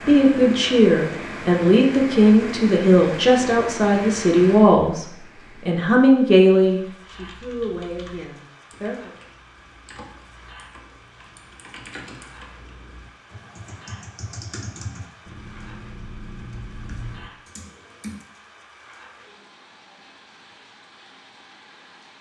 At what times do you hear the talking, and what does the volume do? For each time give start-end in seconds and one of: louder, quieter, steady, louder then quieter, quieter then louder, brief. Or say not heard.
0.1-9.1 quieter.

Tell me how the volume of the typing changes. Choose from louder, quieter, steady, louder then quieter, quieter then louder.
louder.